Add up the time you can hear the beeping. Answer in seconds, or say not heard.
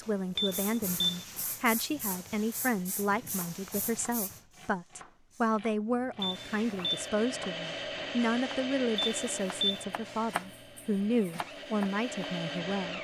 3 s.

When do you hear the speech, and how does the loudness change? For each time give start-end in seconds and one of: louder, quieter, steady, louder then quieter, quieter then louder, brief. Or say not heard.
0.0-12.9 steady.